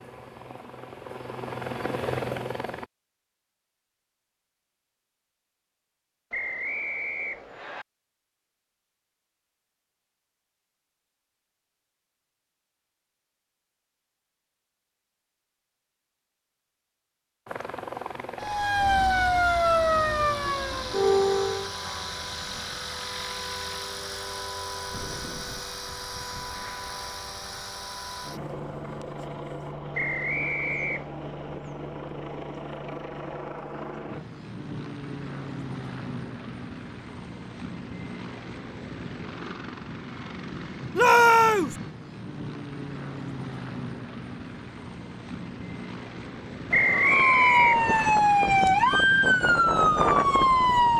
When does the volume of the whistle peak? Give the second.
47 s.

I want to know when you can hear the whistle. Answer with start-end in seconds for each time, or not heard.
6.3-7.8, 29.9-31.1, 46.7-48.1.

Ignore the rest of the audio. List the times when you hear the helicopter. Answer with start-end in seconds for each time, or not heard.
0.0-2.9, 17.4-50.9.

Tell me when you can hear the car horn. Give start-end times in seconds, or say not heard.
not heard.